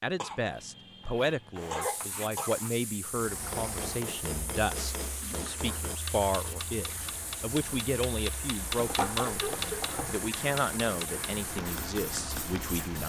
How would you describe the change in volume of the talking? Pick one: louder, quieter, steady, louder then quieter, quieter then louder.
steady.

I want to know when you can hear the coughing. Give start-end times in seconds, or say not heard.
0.1-2.5, 5.2-5.9, 9.2-9.7.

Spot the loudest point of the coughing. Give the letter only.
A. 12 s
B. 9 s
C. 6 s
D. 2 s
D.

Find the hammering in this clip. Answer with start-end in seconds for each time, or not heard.
3.4-12.8.